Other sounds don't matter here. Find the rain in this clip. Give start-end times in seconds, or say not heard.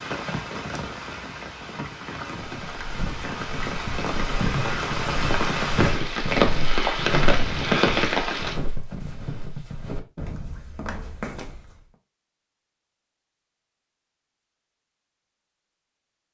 0.0-8.6.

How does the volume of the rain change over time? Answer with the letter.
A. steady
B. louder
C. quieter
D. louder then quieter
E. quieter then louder
B.